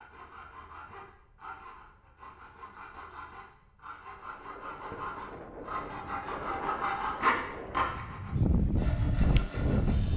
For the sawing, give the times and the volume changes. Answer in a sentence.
You can hear the sawing from 0.0 to 10.1 s, getting louder then quieter.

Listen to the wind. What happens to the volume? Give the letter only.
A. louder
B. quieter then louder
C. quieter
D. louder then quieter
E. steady
A.